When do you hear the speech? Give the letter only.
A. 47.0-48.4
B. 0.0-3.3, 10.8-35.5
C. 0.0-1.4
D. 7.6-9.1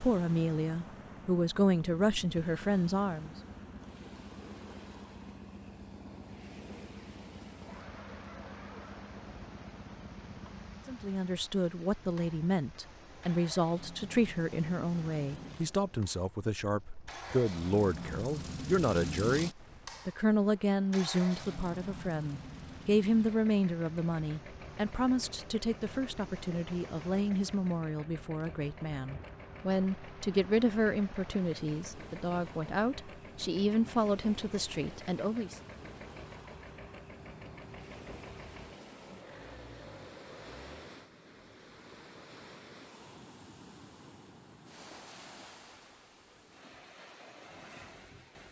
B.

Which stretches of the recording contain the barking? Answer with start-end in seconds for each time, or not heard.
7.6-9.1.